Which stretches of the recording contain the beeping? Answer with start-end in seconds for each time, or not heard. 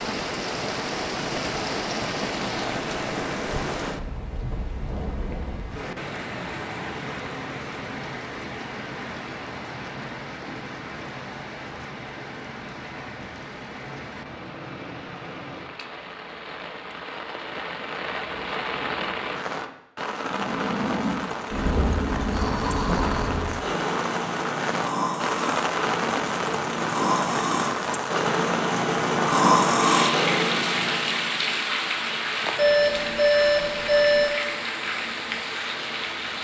32.5-34.3.